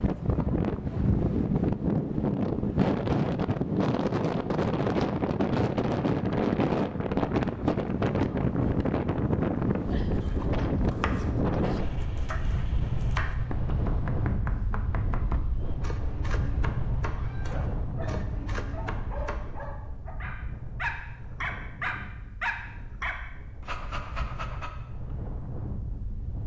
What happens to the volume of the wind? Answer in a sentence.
The volume of the wind goes down.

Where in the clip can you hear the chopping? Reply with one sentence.
You can hear the chopping from 10.2 to 19.6 s.